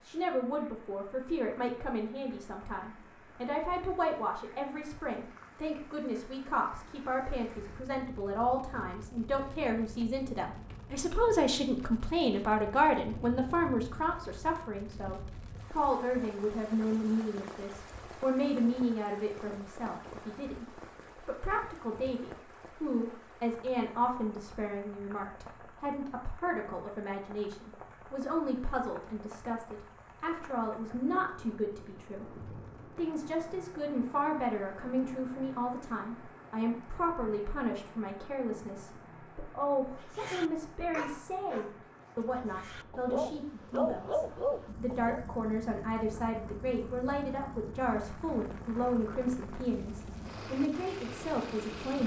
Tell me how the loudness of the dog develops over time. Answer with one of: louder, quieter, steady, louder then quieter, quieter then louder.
quieter then louder.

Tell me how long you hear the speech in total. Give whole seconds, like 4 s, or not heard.
52 s.